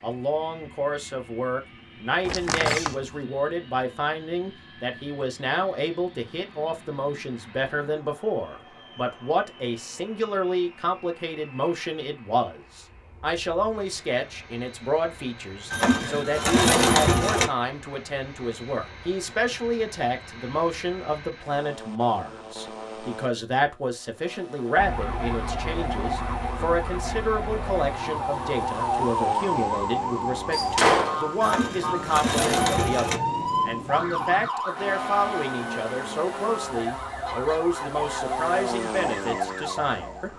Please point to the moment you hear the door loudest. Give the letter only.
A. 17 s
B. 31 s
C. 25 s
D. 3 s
B.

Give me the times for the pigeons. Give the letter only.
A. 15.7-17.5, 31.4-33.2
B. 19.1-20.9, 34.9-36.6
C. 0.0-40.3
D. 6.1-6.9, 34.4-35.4
A.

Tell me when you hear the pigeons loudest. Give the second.
17 s.